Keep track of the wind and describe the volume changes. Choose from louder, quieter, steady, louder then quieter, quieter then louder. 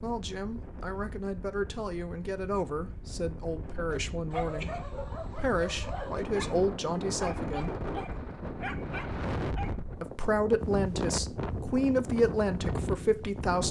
louder.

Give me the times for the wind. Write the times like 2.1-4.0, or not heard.
0.0-13.6.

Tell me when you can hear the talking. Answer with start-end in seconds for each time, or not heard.
0.0-7.7, 10.0-13.6.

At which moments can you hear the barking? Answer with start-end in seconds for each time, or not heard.
3.9-9.8.